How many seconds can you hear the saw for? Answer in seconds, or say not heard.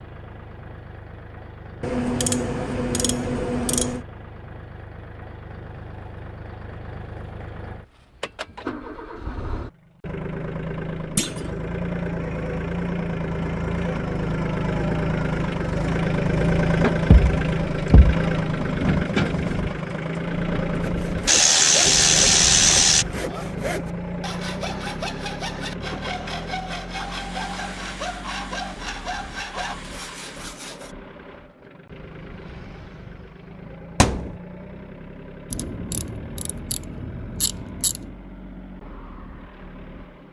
10 s.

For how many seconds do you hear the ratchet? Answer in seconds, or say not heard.
7 s.